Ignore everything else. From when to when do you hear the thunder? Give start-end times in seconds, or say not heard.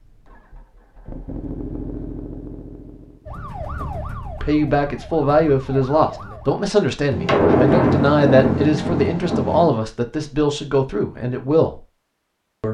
7.1-9.7.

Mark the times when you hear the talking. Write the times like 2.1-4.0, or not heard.
4.4-11.8.